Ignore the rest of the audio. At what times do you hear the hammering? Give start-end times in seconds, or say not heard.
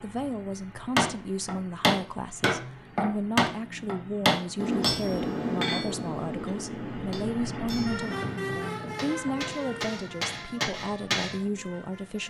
0.9-11.4.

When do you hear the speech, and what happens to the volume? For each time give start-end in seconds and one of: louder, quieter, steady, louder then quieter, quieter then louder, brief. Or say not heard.
0.0-12.2 steady.